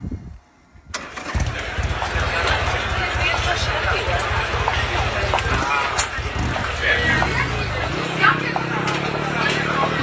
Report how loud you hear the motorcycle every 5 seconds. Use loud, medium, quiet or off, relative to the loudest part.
medium, loud.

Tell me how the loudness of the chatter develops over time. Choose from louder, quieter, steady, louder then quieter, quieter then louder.
steady.